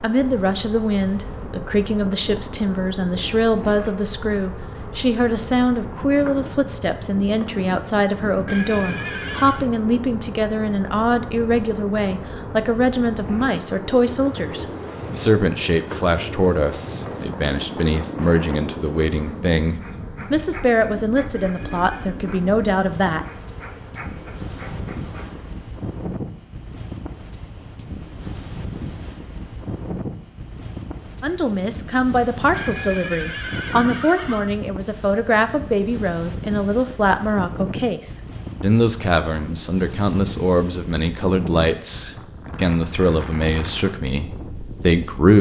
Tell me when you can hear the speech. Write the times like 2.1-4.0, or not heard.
0.0-23.2, 31.2-45.3.